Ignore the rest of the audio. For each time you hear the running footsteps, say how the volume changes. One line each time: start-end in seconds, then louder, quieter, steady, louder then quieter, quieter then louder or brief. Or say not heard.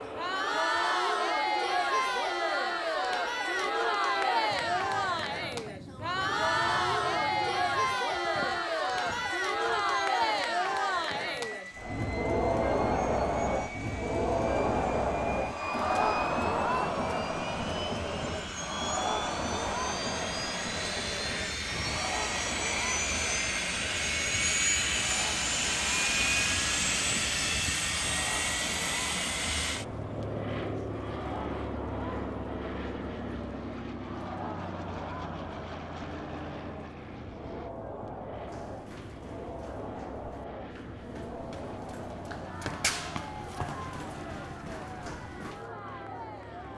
38.5-45.7 louder then quieter.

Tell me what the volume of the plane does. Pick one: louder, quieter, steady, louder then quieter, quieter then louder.
louder then quieter.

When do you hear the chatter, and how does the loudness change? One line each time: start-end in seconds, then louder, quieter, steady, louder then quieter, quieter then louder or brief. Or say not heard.
0.0-46.7 quieter.